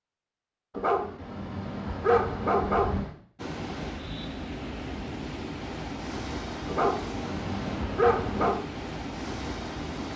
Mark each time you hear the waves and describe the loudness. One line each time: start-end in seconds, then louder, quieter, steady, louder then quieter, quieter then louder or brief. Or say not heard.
3.4-10.1 steady.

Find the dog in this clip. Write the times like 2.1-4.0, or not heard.
0.8-3.1, 6.7-8.6.